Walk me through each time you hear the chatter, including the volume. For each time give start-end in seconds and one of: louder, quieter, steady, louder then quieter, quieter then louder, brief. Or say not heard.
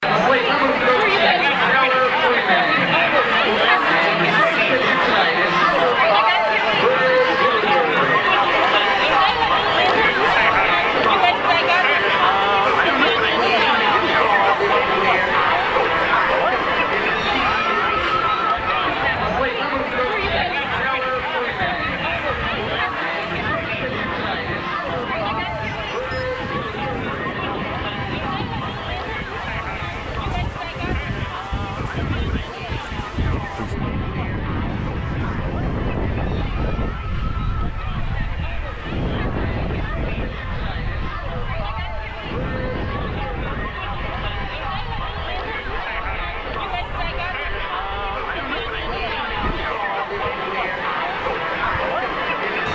0.0-52.7 quieter then louder.